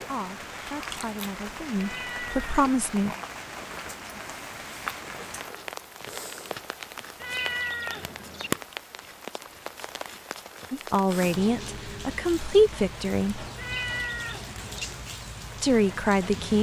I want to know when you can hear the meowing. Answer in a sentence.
You can hear the meowing from 1.8 to 2.6 s, from 7.2 to 8.6 s and from 13.6 to 15.1 s.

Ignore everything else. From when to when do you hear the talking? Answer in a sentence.
You can hear the talking from 0.1 to 3.1 s, from 10.7 to 13.4 s and from 15.6 to 16.5 s.